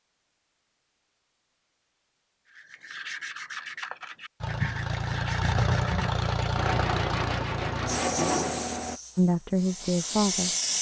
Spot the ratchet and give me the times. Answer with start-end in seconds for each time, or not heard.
not heard.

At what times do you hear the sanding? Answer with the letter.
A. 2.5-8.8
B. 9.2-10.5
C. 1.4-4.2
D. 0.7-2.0
A.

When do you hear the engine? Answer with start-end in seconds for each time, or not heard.
4.4-9.0.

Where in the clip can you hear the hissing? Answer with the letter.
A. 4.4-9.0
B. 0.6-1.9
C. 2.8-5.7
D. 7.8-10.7
D.